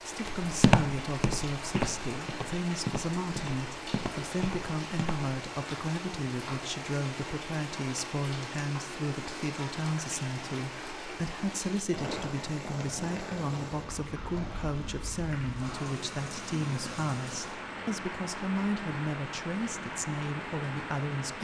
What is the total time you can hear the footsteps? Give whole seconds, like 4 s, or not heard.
5 s.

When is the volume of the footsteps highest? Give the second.
1 s.